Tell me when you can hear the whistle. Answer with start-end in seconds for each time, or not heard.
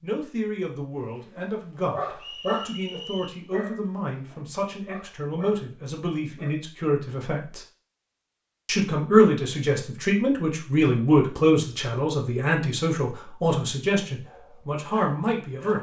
2.1-3.4.